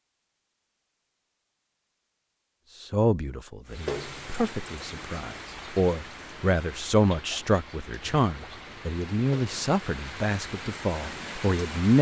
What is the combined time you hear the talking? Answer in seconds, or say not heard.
9 s.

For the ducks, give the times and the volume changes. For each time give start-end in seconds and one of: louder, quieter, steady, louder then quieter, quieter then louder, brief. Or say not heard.
not heard.